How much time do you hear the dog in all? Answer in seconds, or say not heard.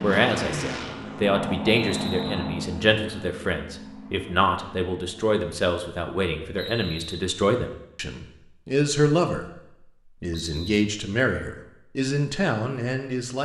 not heard.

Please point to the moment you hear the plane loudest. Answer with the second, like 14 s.
2 s.